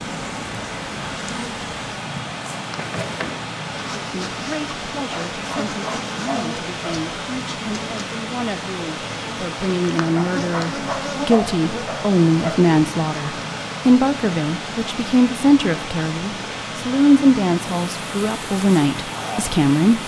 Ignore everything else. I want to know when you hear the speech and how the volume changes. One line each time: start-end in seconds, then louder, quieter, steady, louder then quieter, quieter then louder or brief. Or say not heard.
4.0-20.0 louder.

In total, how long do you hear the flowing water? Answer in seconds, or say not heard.
20 s.